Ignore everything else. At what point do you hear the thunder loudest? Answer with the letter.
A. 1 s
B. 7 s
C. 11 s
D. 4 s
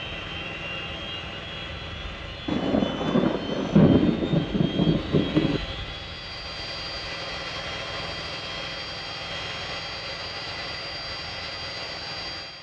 D.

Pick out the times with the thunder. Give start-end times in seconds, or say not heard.
2.5-5.6.